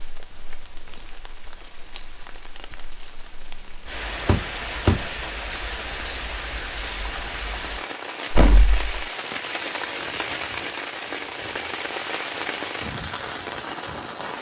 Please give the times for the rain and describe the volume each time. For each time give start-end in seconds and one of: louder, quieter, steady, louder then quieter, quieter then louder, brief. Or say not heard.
0.0-14.3 louder.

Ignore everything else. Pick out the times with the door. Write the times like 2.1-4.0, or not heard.
4.2-5.0, 8.3-8.9.